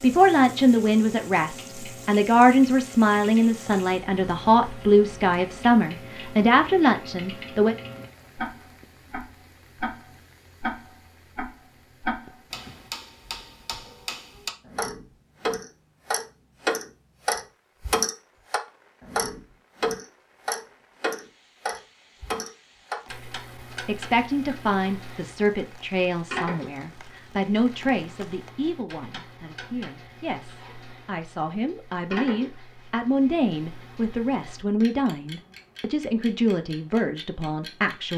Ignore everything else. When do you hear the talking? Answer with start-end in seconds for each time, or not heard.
0.0-7.8, 23.9-38.1.